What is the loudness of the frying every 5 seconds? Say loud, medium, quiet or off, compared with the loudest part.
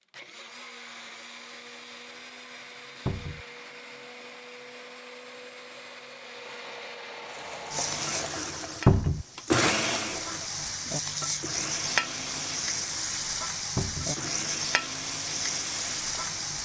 off, medium, loud, loud.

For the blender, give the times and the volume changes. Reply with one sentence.
The blender can be heard from 0.1 to 16.6 s, getting louder then quieter.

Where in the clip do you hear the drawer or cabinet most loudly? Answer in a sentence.
The volume of the drawer or cabinet peaks at 9 seconds.